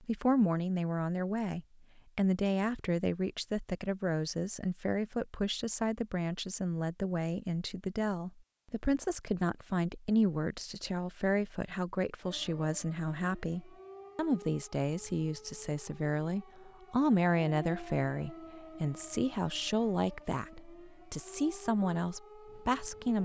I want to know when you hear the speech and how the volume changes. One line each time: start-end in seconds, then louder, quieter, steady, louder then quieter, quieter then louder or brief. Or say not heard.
0.0-23.2 steady.